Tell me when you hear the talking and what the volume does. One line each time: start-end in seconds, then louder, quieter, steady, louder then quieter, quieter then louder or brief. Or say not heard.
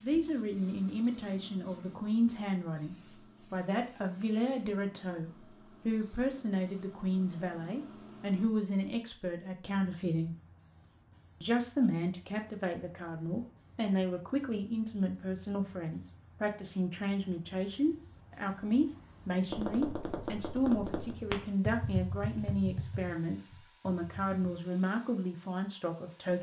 0.0-10.3 steady
11.4-26.3 steady.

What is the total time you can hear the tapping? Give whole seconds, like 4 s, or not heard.
5 s.